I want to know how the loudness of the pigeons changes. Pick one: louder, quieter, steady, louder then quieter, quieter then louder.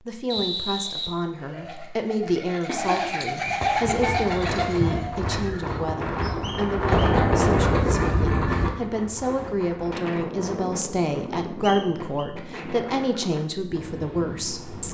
louder then quieter.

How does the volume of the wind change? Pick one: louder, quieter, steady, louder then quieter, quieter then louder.
louder then quieter.